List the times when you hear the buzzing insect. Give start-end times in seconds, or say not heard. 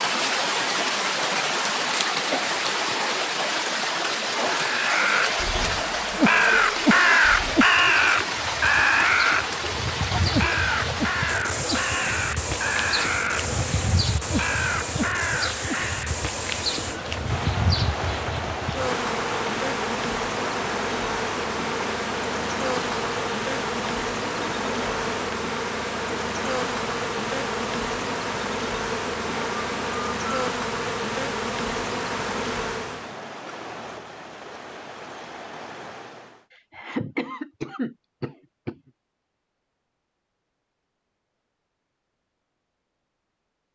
5.4-33.1.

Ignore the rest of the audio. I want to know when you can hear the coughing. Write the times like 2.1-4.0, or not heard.
2.3-3.0, 36.5-38.8.